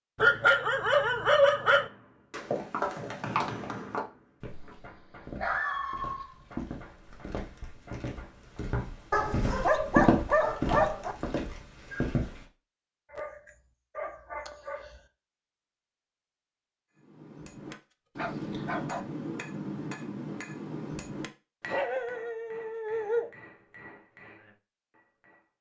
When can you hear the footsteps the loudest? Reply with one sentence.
The loudest moment of the footsteps is at 10 seconds.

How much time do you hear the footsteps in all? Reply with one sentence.
You can hear the footsteps for 10 seconds altogether.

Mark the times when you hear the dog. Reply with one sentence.
The dog can be heard from 0.1 to 1.9 s, from 4.9 to 6.5 s, from 9.1 to 11.2 s, from 13.1 to 15.0 s, from 17.7 to 19.1 s and from 21.7 to 23.3 s.